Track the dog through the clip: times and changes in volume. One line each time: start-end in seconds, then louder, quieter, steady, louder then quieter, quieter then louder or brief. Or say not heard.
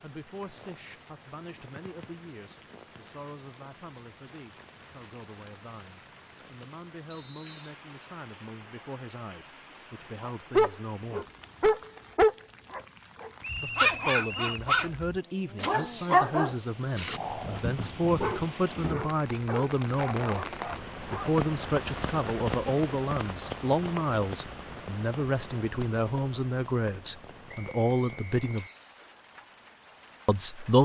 10.2-21.4 quieter.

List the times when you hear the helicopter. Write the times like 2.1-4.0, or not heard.
not heard.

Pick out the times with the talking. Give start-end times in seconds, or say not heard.
0.0-11.2, 13.6-28.6, 30.2-30.8.